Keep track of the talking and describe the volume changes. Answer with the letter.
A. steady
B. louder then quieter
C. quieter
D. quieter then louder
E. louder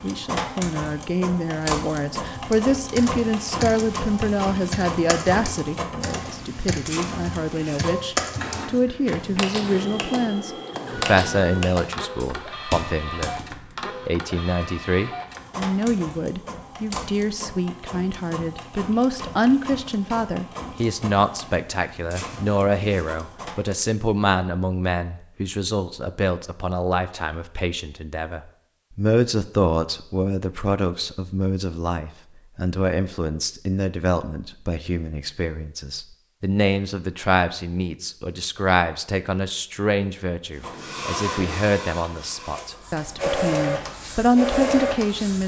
A.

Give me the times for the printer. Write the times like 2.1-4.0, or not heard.
0.0-23.8, 40.6-45.4.